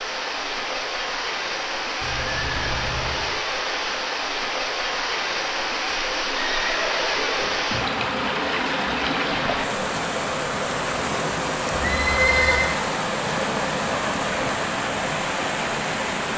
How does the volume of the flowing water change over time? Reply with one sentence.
The volume of the flowing water stays about the same.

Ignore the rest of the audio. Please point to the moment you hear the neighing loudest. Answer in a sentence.
The volume of the neighing peaks at 12 seconds.